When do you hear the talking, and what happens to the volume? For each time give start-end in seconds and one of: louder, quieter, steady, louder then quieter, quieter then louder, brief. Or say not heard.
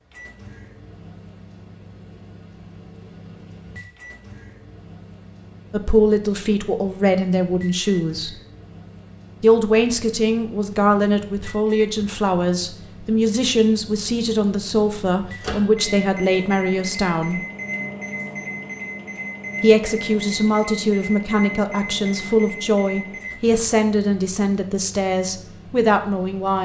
5.7-8.4 brief
9.4-17.4 steady
19.6-26.6 steady.